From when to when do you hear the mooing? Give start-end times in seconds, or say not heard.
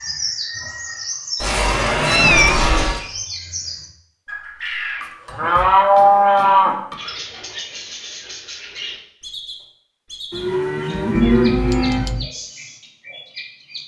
1.4-3.0, 5.0-7.0, 10.3-12.2.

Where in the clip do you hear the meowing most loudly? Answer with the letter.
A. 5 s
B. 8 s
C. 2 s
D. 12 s
C.